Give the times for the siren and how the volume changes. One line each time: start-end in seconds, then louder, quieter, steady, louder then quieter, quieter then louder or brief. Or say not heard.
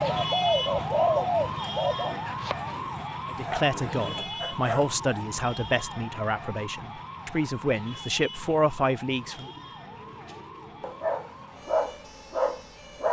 0.0-13.0 quieter.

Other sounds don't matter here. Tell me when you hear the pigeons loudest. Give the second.
1 s.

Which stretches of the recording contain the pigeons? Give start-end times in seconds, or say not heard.
0.0-2.1, 9.2-10.9.